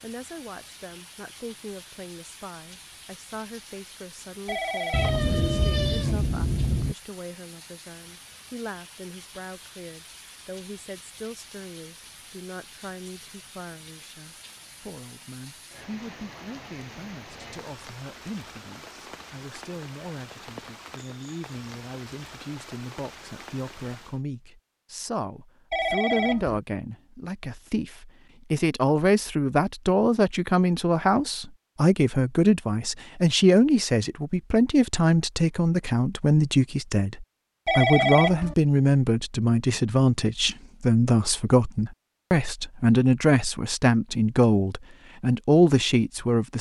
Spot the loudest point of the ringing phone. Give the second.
38 s.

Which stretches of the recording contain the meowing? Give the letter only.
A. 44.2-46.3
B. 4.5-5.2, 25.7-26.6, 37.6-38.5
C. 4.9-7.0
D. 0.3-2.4
C.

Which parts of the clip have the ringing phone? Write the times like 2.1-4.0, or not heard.
4.5-5.2, 25.7-26.6, 37.6-38.5.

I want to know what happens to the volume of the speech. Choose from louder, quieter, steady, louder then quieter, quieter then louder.
louder.